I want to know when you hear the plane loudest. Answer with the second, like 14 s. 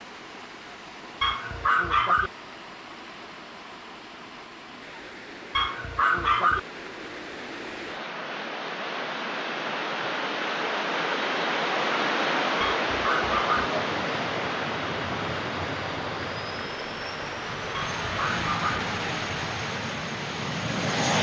21 s.